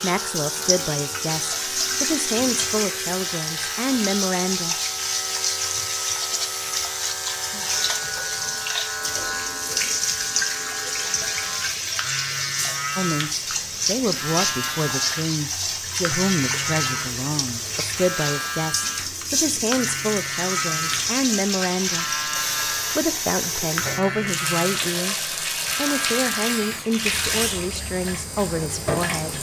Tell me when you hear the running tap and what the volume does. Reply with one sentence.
The running tap can be heard from 0.0 to 29.3 s, at a steady volume.